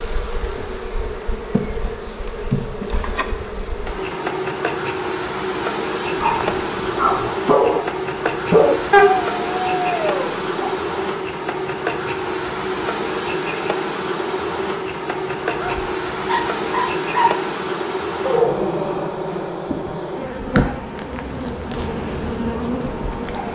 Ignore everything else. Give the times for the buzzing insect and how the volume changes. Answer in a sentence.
The buzzing insect can be heard from 0.0 to 23.5 s, at a steady volume.